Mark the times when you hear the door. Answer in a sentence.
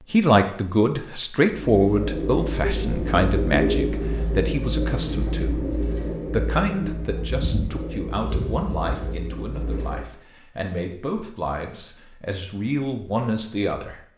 The door can't be heard in this clip.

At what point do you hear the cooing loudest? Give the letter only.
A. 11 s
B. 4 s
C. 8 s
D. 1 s
B.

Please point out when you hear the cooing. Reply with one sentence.
The cooing can be heard from 1.5 to 10.1 s.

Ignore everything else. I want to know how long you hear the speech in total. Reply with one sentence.
The speech can be heard for 13 seconds in total.